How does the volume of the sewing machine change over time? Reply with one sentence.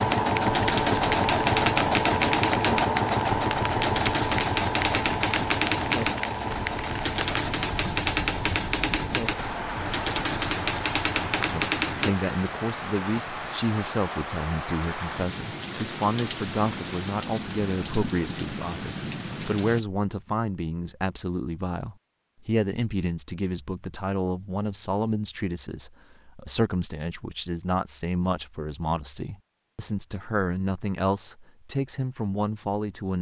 The volume of the sewing machine goes down.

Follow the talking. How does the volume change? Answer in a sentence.
The loudness of the talking stays about the same.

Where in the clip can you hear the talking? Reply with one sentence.
The talking can be heard from 11.5 to 33.1 s.